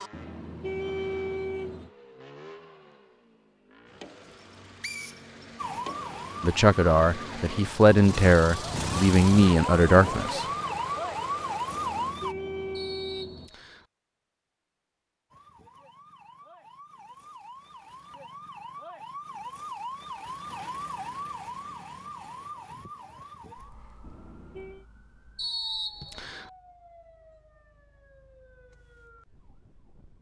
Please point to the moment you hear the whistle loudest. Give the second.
26 s.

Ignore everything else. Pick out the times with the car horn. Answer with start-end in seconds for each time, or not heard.
0.1-1.9, 11.7-13.5, 24.0-24.9.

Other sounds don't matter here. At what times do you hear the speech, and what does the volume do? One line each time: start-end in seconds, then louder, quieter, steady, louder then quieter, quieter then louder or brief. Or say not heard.
6.4-10.4 steady.